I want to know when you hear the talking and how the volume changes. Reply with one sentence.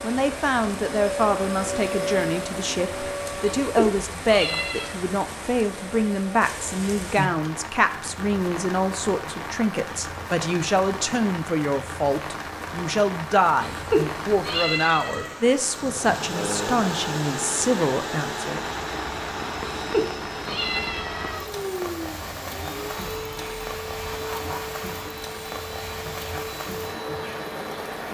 You can hear the talking from 0.0 to 18.7 s, at a steady volume.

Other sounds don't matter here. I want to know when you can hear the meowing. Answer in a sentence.
The meowing can be heard from 3.6 to 5.0 s, from 13.6 to 15.3 s and from 19.8 to 21.4 s.